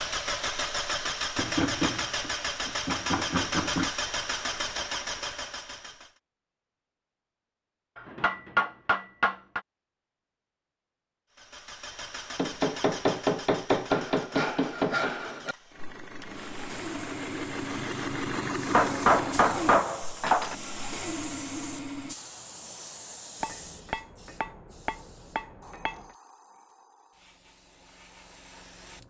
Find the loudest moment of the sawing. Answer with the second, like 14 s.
15 s.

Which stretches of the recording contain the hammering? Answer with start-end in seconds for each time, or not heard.
1.4-3.9, 8.0-9.6, 12.3-15.1, 18.7-20.6, 23.4-26.0.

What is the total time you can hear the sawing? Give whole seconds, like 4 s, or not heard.
8 s.